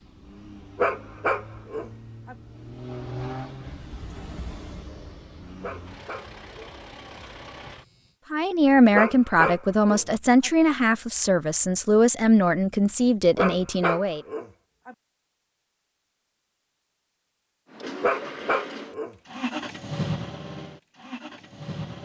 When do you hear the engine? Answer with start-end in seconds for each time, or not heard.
0.0-8.2, 17.6-21.9.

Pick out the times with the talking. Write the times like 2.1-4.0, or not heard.
8.3-14.2.